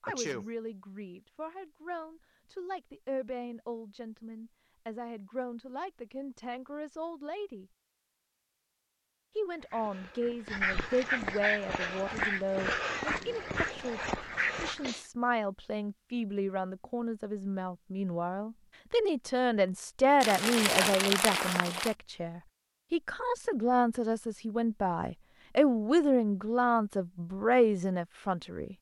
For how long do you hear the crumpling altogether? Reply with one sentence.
The crumpling can be heard for 2 seconds in total.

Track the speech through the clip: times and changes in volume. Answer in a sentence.
The speech can be heard from 0.0 to 7.7 s, at a steady volume; and from 9.3 to 28.7 s, getting louder.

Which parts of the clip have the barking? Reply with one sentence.
You can hear the barking from 9.6 to 15.1 s.